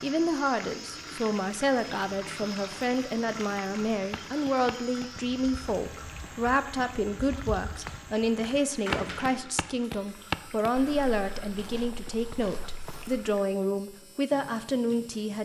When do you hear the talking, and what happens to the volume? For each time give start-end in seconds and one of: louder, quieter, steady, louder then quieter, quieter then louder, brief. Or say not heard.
0.0-15.4 steady.